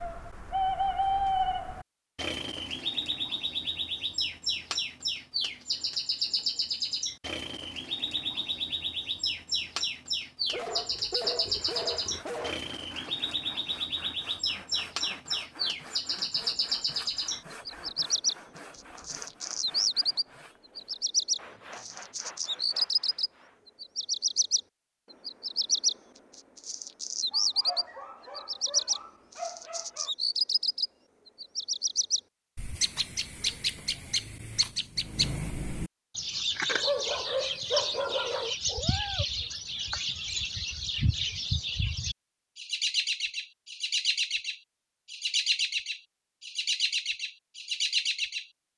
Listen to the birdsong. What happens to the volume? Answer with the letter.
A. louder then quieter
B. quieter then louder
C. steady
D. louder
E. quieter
C.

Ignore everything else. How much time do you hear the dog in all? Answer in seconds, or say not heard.
7 s.